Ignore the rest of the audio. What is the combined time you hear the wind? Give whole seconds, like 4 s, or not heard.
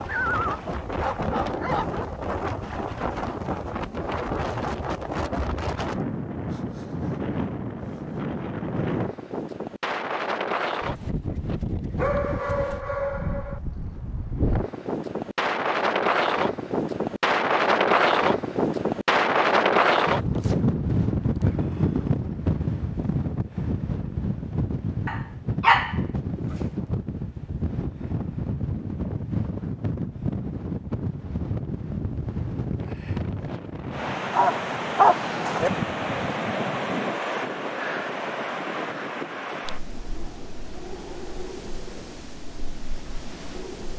44 s.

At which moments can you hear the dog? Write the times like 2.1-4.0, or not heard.
0.1-2.0, 11.9-13.6, 25.1-26.6, 34.4-35.7.